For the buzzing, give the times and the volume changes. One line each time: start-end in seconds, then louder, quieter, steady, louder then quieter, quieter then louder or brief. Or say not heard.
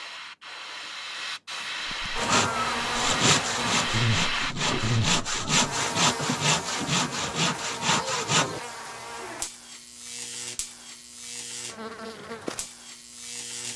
2.1-13.7 quieter.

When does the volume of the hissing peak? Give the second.
4 s.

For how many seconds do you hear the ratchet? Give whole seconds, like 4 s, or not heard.
not heard.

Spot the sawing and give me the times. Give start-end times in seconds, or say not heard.
2.2-8.6.